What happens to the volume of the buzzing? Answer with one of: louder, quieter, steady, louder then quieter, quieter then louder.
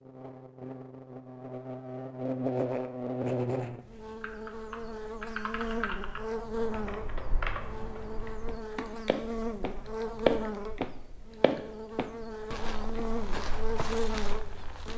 steady.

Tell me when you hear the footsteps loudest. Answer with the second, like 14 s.
10 s.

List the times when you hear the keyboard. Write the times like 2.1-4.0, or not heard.
4.2-11.8.